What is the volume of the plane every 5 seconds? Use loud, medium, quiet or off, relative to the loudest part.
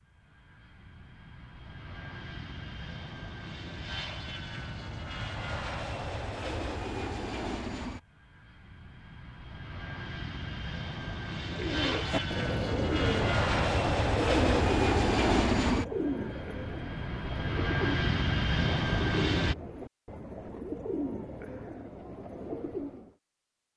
quiet, medium, loud, loud, off.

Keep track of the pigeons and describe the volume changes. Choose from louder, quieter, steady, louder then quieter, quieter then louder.
quieter.